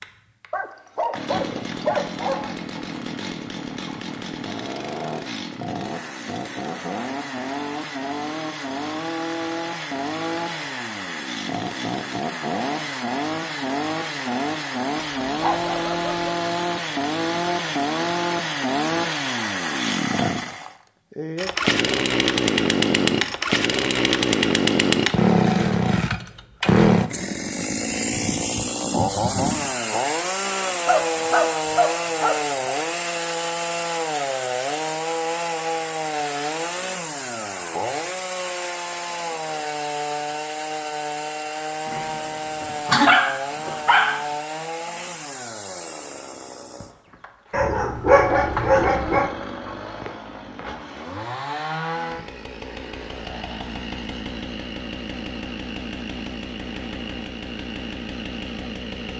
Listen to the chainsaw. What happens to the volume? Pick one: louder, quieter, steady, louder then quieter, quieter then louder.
louder then quieter.